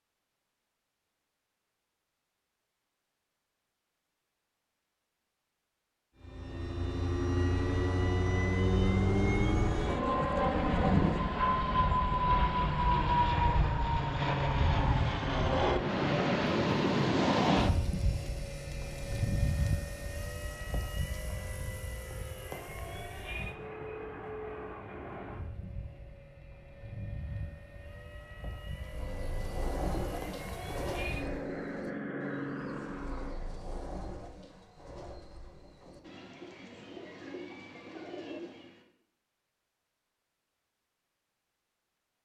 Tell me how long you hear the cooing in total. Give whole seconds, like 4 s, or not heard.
10 s.